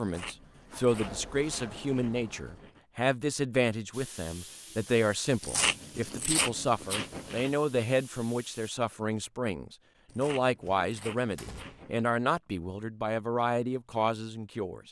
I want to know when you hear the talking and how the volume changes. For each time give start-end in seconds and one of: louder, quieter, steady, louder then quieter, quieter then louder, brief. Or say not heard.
0.0-14.8 steady.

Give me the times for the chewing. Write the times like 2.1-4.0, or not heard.
0.0-2.8, 5.4-7.5, 10.1-12.1.